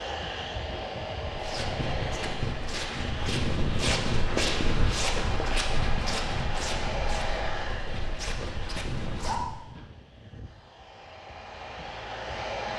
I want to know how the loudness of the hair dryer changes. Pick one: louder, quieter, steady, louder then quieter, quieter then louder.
quieter.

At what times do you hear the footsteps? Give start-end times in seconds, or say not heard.
1.2-9.8.